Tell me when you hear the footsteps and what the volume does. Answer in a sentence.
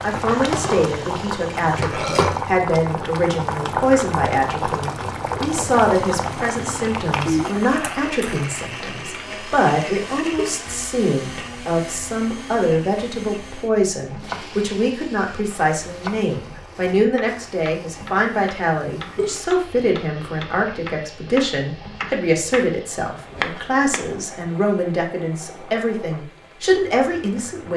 You can't hear the footsteps here.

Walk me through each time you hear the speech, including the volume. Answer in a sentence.
You can hear the speech from 0.0 to 27.7 s, at a steady volume.